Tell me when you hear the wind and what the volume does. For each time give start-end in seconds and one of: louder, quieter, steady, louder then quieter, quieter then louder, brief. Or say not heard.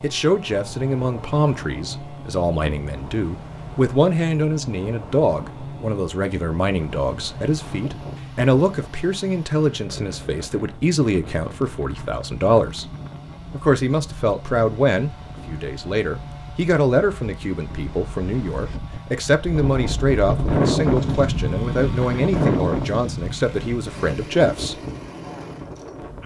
0.0-26.2 louder.